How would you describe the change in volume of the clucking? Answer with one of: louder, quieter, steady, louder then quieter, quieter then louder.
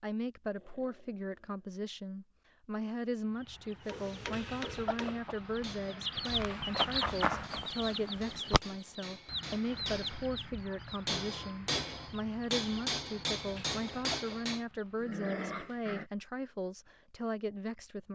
louder then quieter.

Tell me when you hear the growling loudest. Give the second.
15 s.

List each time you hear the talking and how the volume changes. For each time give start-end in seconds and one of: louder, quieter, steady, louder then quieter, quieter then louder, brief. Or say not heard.
0.0-18.1 steady.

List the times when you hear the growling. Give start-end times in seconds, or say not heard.
0.6-1.7, 15.0-16.1.